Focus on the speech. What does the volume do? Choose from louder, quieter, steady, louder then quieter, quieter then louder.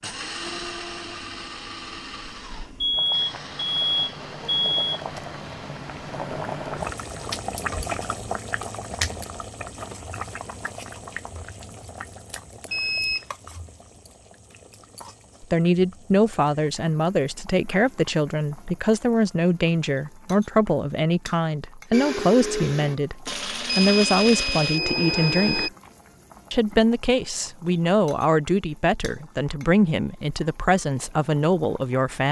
steady.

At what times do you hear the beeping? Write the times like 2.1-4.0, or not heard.
2.8-5.0, 12.7-13.2, 23.6-25.7.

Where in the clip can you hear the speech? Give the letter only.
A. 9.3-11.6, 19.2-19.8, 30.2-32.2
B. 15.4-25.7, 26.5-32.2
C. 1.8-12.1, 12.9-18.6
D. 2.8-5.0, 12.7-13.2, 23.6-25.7
B.